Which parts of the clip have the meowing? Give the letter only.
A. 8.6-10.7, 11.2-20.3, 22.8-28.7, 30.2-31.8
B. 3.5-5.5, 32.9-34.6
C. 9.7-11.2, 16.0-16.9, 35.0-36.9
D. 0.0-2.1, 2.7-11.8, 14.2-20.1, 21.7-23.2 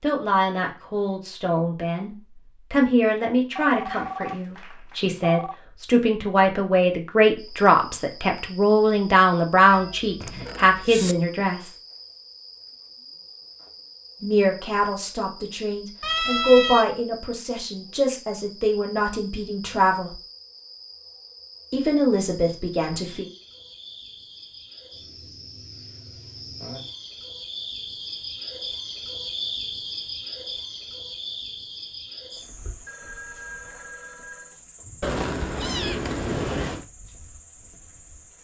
C.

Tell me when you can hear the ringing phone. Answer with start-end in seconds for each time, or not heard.
3.5-5.5, 32.9-34.6.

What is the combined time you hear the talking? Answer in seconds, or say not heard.
19 s.